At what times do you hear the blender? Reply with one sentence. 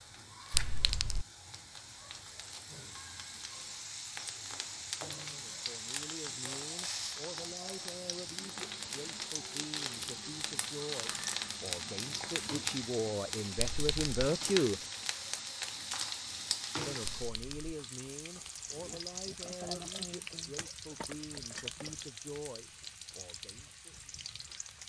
The blender can't be heard in this clip.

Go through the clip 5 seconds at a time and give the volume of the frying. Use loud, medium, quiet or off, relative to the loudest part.
medium, loud, loud, loud, medium.